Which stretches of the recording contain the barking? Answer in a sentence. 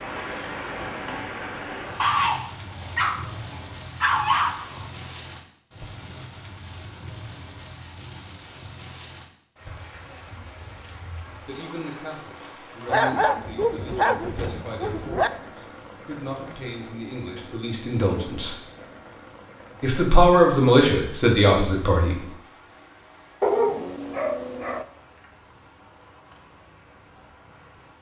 You can hear the barking from 1.9 to 4.8 s, from 12.8 to 15.3 s and from 23.4 to 24.9 s.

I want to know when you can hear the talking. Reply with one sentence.
The talking can be heard from 11.4 to 18.6 s and from 19.8 to 22.1 s.